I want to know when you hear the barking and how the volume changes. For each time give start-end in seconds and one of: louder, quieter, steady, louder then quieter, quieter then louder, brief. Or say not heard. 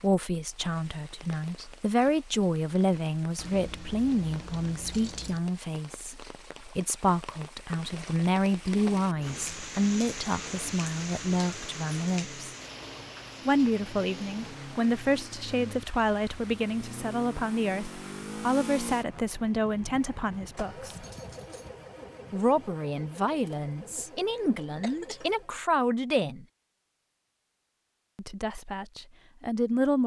not heard.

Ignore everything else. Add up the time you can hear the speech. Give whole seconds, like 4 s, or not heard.
26 s.